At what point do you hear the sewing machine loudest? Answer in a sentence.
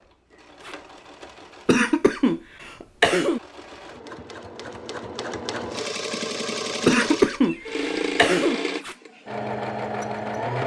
The volume of the sewing machine peaks at 8 seconds.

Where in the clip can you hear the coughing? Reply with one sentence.
You can hear the coughing from 1.6 to 3.4 s and from 6.8 to 8.6 s.